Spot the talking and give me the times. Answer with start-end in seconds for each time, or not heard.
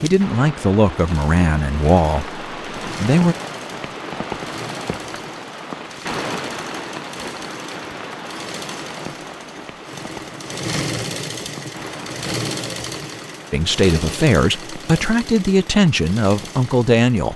0.0-3.4, 13.5-17.3.